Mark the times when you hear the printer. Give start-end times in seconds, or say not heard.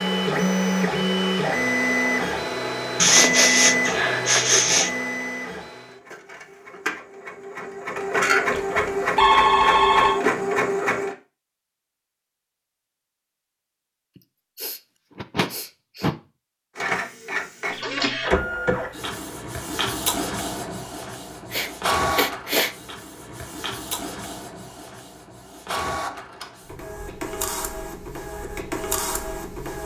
0.0-11.2, 16.8-29.8.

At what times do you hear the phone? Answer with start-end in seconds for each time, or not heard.
8.5-10.2.